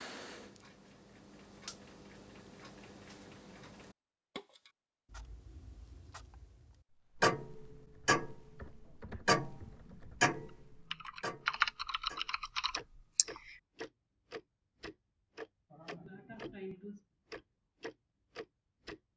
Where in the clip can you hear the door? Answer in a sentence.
The door can't be heard in this clip.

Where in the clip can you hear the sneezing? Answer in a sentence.
You can hear the sneezing from 15.7 to 17.0 s.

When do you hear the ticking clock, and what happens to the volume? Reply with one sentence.
You can hear the ticking clock from 0.0 to 16.6 s, getting louder then quieter; and briefly from 17.3 to 19.0 s.